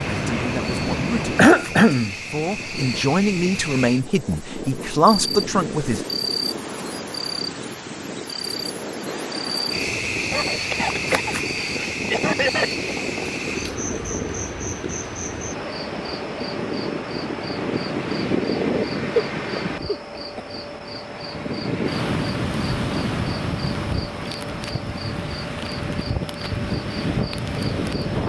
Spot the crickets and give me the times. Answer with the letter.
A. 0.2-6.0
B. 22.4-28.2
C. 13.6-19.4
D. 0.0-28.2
D.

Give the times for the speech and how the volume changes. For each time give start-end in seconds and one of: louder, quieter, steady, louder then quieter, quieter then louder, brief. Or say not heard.
0.2-6.0 louder.